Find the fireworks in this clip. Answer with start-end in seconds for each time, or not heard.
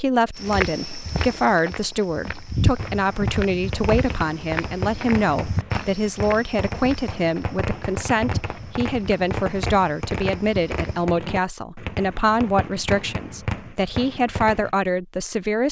2.8-14.7.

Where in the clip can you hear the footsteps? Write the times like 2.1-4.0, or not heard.
0.3-11.1.